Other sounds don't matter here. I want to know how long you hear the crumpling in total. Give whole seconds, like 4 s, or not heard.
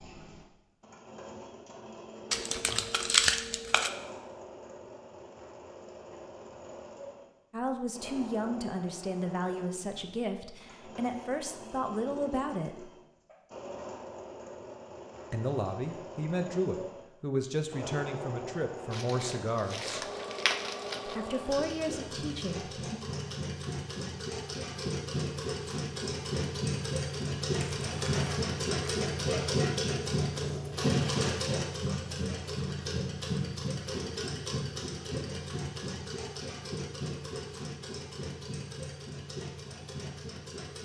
5 s.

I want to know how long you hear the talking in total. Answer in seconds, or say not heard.
12 s.